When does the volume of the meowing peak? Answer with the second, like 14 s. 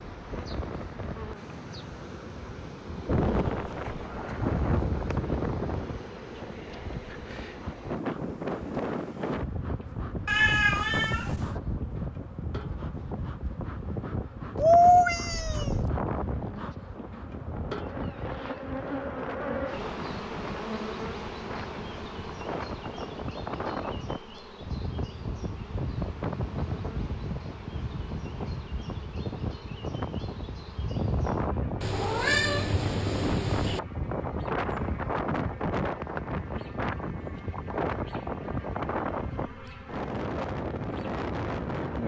15 s.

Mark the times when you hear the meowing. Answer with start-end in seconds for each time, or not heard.
10.2-11.5, 14.6-15.9, 31.8-33.8.